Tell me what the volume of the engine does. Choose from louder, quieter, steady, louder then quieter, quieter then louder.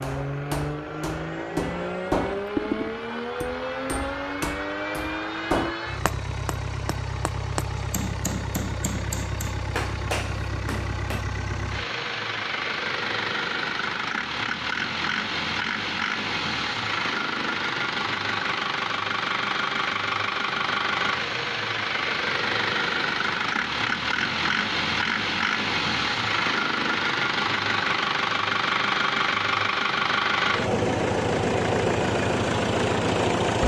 louder.